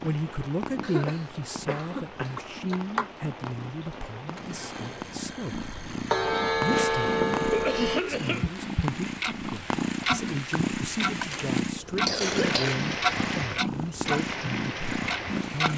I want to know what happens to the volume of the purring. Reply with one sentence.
The volume of the purring goes up.